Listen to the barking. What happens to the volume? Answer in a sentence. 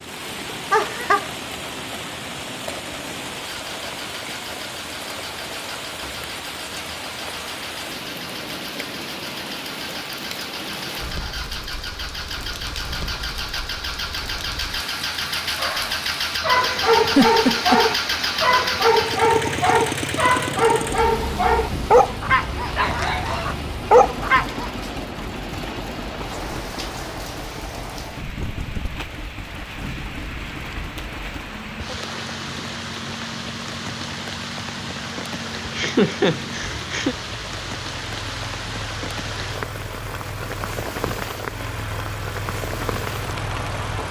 The volume of the barking stays about the same.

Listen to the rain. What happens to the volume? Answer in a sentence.
The loudness of the rain stays about the same.